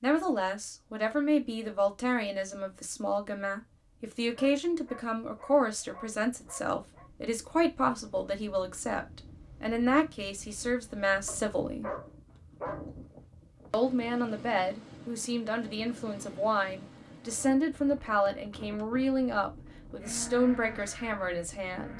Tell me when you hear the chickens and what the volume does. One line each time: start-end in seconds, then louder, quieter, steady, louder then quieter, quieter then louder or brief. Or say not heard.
not heard.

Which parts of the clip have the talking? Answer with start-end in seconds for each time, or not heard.
0.0-11.9, 13.7-21.9.